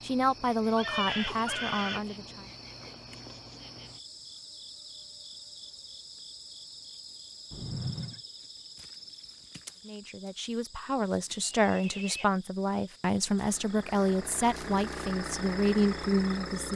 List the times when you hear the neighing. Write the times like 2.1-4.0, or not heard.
0.8-2.0, 7.5-8.2, 11.4-12.2.